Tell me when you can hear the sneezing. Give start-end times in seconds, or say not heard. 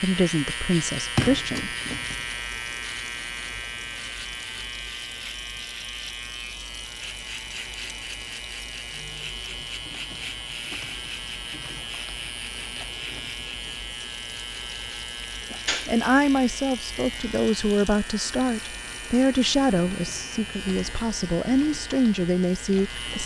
15.4-16.0.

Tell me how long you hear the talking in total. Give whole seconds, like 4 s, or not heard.
9 s.